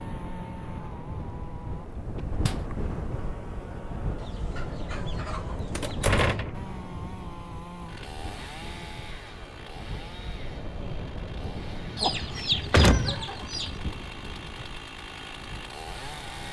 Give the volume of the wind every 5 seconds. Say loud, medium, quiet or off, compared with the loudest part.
loud, loud, loud, medium.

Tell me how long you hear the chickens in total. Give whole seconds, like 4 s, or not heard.
4 s.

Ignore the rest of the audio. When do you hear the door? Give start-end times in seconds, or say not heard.
5.8-6.5, 12.1-13.9.